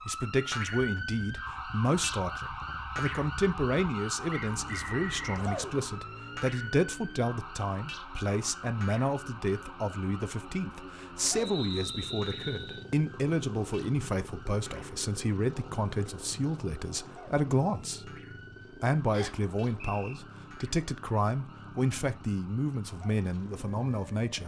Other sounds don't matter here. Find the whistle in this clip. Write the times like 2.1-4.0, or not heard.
4.3-5.5, 11.3-12.8, 19.1-20.2.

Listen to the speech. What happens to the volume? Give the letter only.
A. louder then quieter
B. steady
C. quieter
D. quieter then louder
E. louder
B.